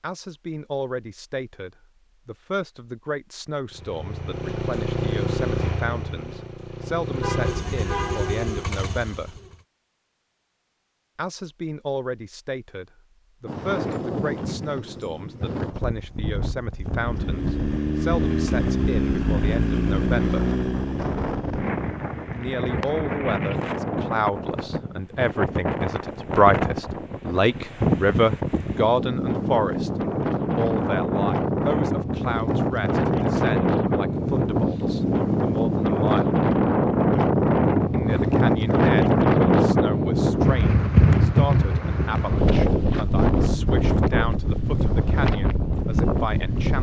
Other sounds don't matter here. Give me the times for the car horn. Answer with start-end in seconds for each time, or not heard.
7.2-8.5.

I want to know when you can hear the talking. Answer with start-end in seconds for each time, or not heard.
0.0-9.4, 11.2-20.4, 22.4-36.4, 37.9-46.7.